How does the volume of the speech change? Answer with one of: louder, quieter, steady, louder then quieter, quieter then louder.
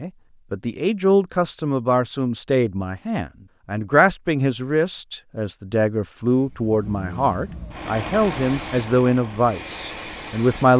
steady.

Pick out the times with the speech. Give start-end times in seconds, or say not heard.
0.0-10.7.